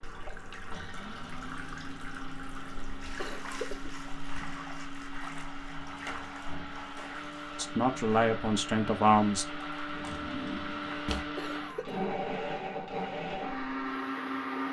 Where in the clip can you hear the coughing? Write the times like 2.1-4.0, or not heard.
3.1-4.0, 11.3-12.1.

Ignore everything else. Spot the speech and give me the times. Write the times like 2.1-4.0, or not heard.
7.5-9.4.